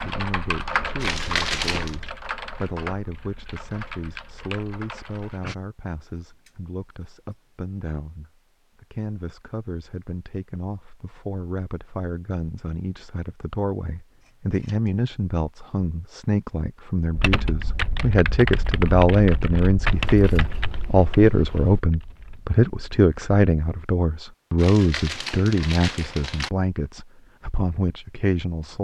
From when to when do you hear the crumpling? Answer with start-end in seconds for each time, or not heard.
1.0-1.9, 24.6-26.5.